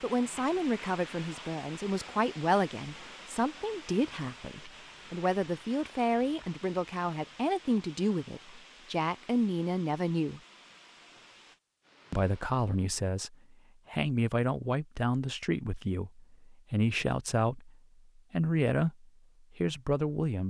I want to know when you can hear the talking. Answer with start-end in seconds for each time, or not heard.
0.0-10.4, 12.1-20.4.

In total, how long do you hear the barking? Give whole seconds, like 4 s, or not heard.
not heard.